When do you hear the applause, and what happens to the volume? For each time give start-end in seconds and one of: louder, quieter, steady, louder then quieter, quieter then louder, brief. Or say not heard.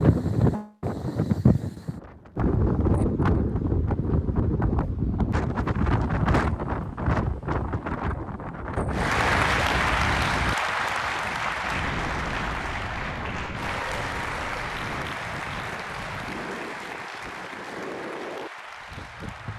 8.9-19.5 quieter.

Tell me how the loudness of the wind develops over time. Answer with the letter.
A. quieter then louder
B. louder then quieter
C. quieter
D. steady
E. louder
C.